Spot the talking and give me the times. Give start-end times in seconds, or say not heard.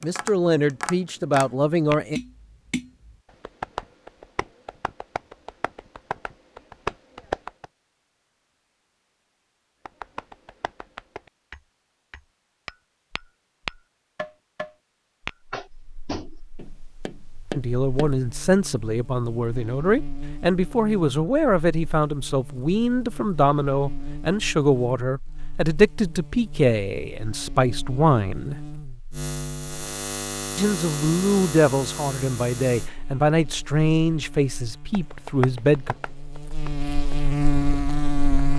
0.0-2.2, 17.6-28.6, 30.6-36.0.